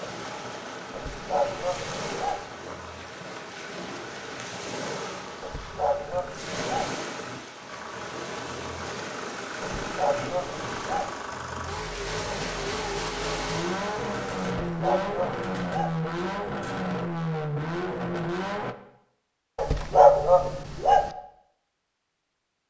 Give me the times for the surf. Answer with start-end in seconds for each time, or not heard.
0.0-14.6.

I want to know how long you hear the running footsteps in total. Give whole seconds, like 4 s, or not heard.
not heard.